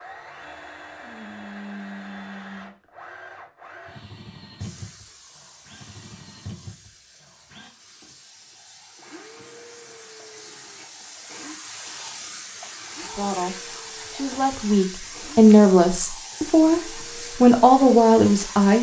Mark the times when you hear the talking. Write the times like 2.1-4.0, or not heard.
13.0-18.7.